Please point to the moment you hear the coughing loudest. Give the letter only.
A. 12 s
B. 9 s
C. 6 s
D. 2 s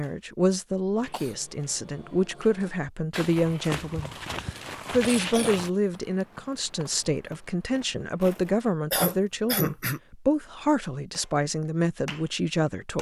B.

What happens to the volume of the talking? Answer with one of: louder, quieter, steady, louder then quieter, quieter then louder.
steady.